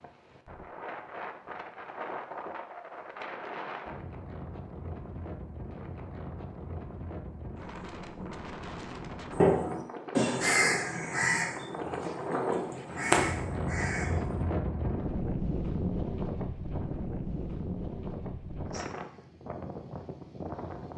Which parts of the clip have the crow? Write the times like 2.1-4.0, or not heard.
9.3-14.4.